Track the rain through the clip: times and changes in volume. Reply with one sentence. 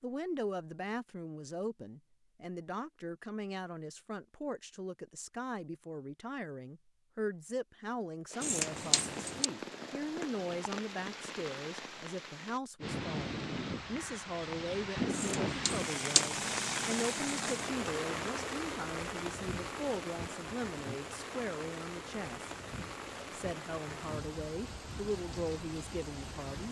The rain can be heard from 8.3 to 26.6 s, getting louder then quieter.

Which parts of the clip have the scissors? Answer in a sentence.
You can hear the scissors from 8.4 to 9.5 s and from 15.1 to 16.4 s.